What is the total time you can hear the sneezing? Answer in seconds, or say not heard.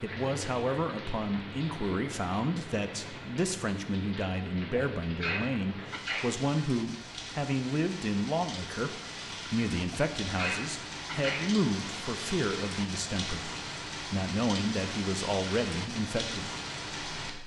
3 s.